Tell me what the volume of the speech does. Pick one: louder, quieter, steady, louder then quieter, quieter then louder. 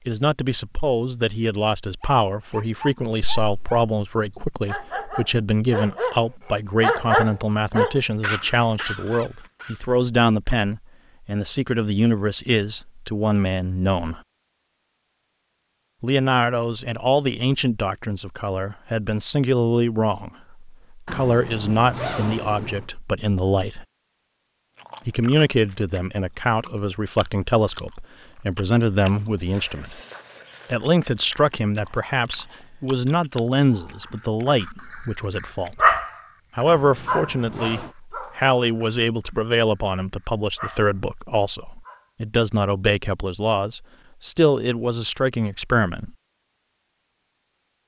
steady.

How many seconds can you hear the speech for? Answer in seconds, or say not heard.
42 s.